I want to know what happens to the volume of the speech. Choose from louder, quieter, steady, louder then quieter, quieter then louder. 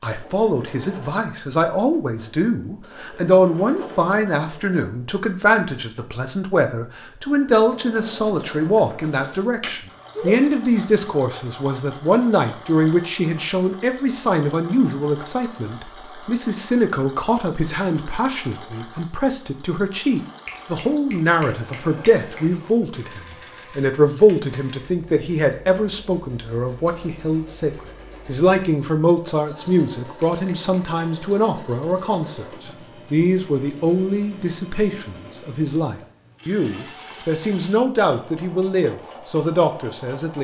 steady.